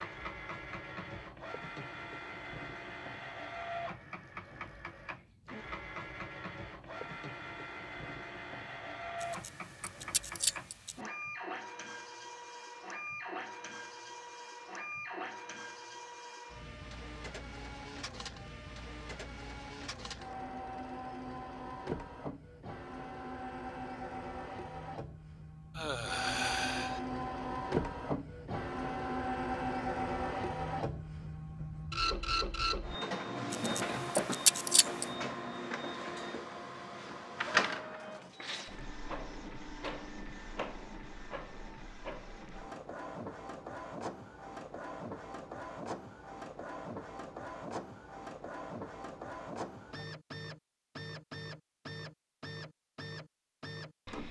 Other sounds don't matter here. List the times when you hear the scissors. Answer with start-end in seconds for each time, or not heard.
9.2-10.9, 33.5-35.0.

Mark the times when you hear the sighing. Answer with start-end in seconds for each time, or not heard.
25.7-27.0.